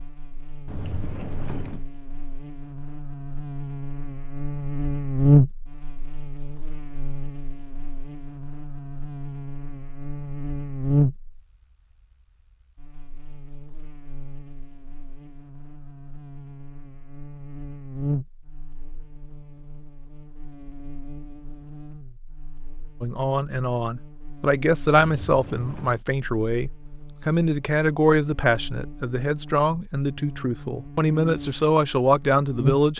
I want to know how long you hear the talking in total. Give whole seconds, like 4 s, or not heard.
10 s.